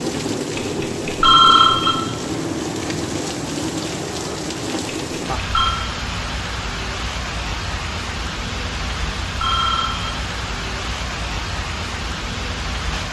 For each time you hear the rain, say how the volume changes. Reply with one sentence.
You can hear the rain from 0.0 to 13.0 s, at a steady volume.